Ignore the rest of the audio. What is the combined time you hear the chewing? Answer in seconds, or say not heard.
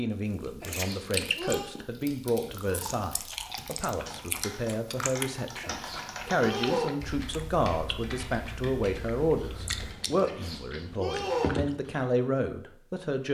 12 s.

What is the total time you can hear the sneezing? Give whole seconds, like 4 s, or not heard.
4 s.